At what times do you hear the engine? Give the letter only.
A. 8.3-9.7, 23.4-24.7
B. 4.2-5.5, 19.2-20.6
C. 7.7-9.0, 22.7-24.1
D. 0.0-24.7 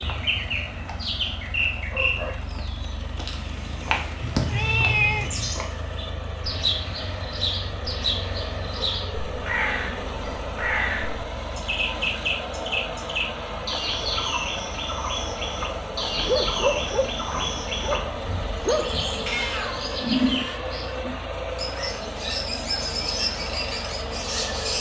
D.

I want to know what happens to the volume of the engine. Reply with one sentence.
The loudness of the engine goes up.